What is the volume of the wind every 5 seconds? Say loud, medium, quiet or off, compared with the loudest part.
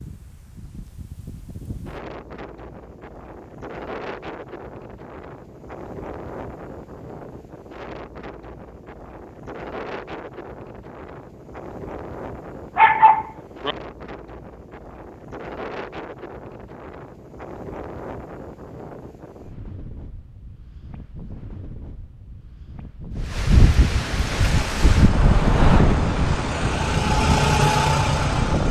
quiet, quiet, quiet, quiet, medium, loud.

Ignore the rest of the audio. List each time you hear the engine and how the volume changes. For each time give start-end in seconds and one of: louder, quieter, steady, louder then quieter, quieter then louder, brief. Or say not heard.
24.2-28.6 louder.